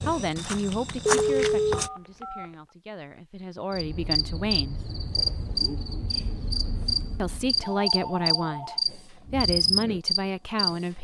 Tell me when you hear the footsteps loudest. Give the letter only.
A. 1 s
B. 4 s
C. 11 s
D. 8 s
A.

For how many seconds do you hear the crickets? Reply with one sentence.
You can hear the crickets for 7 seconds altogether.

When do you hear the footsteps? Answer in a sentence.
You can hear the footsteps from 0.0 to 1.9 s.